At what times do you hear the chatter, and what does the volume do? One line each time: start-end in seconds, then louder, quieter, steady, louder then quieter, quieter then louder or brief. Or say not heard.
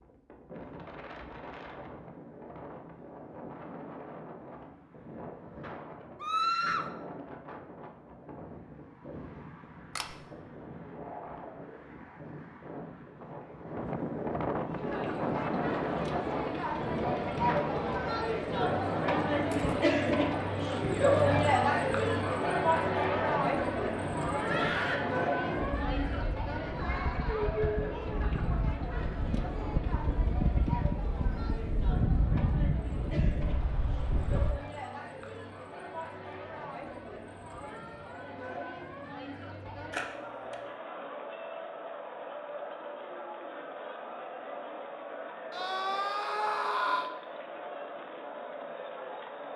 14.7-49.5 quieter.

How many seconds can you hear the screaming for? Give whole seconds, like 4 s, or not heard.
3 s.